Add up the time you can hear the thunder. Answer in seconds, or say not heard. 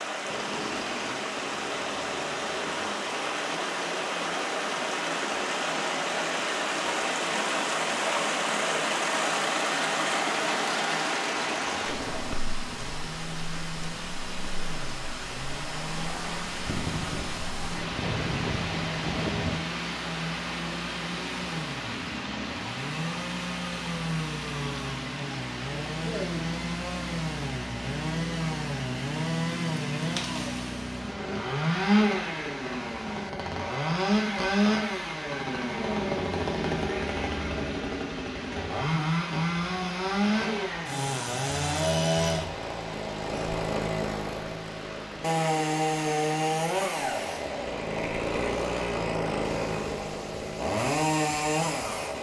3 s.